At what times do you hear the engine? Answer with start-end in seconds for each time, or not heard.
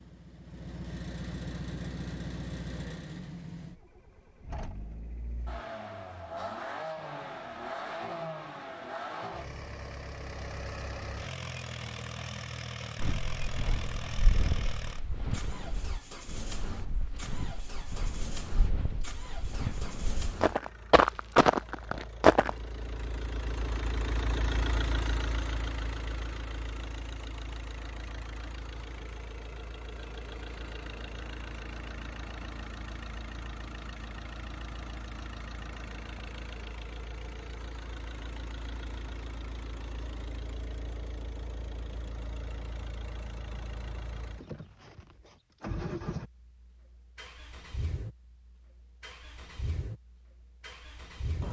0.0-51.4.